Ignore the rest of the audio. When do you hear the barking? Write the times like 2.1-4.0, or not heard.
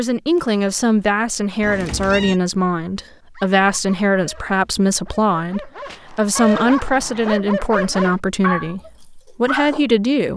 3.3-9.8.